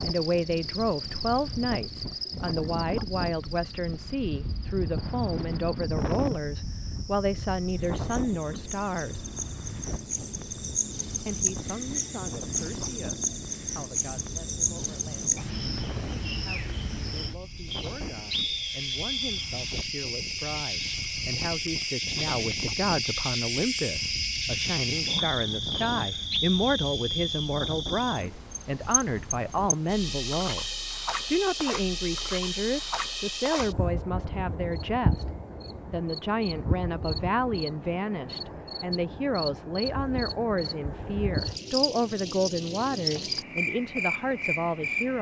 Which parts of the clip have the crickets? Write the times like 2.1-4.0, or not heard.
0.0-45.1.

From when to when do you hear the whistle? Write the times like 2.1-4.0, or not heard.
17.7-19.4, 25.7-27.5.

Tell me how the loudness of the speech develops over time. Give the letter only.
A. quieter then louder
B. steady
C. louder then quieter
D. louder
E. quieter
A.